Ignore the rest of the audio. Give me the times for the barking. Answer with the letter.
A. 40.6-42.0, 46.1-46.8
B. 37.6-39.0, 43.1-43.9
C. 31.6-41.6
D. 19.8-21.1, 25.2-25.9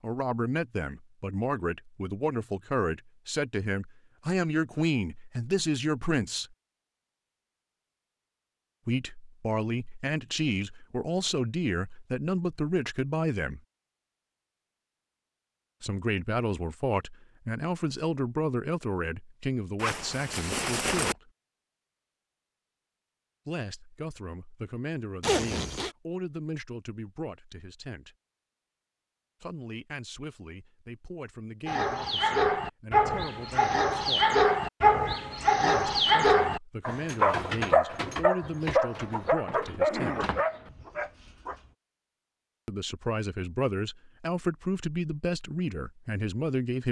C.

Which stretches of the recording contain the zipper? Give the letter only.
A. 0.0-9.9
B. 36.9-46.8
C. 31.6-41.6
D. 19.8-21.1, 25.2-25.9
D.